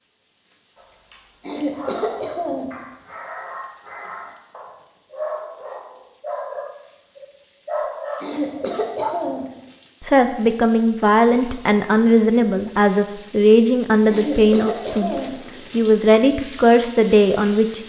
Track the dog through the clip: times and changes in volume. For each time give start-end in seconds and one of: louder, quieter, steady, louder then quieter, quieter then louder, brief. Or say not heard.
0.8-9.2 louder.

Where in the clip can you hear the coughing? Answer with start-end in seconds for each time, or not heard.
1.4-2.8, 8.2-9.5, 14.1-15.4.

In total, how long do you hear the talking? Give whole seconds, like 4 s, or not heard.
8 s.